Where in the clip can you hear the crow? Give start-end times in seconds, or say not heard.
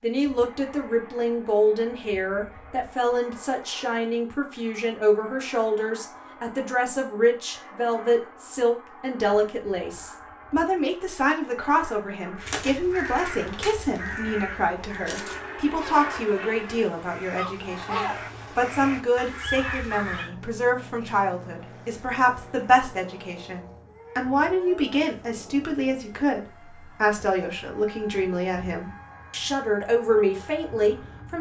12.3-20.3.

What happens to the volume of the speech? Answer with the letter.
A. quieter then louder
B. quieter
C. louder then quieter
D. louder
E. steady
E.